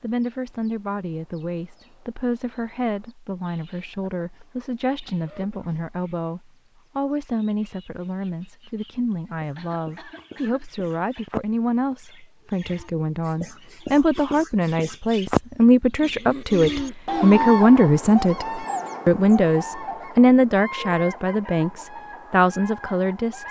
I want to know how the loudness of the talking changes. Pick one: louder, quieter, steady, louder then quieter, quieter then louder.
louder.